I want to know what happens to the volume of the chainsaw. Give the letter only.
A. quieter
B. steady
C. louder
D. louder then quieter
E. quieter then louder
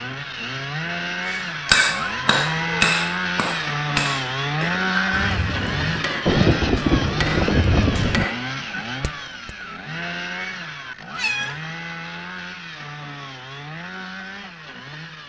A.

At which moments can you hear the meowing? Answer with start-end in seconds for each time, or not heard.
1.6-2.9, 5.1-6.1, 11.2-11.6.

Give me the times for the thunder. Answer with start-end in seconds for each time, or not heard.
6.2-8.2.